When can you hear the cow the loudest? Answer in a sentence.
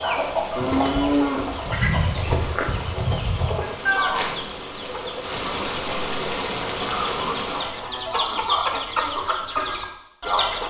The loudest moment of the cow is at 1 second.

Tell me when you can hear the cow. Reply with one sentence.
You can hear the cow from 0.6 to 1.6 s and from 7.7 to 9.2 s.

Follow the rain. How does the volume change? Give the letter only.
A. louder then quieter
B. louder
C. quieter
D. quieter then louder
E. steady
B.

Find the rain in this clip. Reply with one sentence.
You can hear the rain from 0.0 to 7.9 s.